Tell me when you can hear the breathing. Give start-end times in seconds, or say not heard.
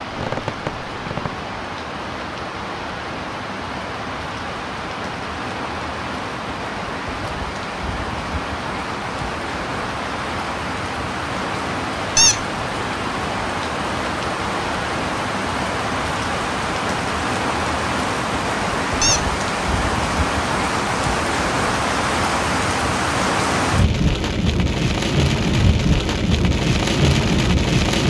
not heard.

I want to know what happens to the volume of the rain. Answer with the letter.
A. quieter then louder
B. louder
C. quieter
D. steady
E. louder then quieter
B.